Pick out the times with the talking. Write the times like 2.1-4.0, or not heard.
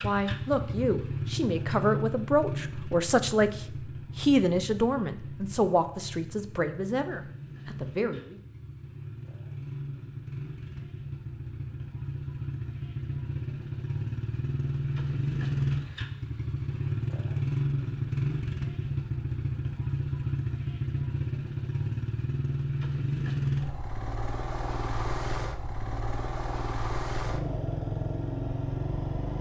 0.0-8.4.